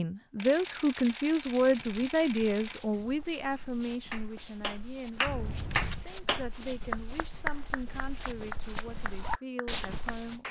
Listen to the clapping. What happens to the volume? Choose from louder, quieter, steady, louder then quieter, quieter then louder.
quieter.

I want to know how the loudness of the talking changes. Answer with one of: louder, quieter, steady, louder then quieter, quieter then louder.
quieter.